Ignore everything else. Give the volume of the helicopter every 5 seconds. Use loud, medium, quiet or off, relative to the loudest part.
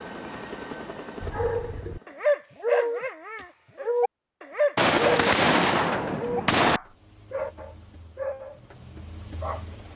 loud, medium.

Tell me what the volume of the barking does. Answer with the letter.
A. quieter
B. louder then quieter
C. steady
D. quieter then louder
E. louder
A.